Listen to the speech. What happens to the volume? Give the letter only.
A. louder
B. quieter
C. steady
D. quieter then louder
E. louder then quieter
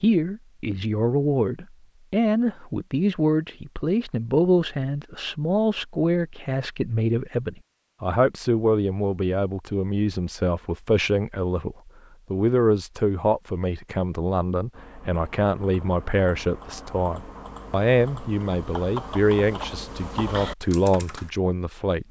C.